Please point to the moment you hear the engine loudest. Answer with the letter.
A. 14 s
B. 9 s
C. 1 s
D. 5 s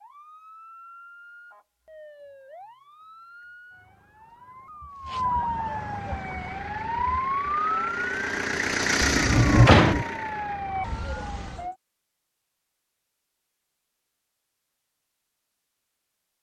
B.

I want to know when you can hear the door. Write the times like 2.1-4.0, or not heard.
9.0-10.1.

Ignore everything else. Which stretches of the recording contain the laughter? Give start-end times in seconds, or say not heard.
not heard.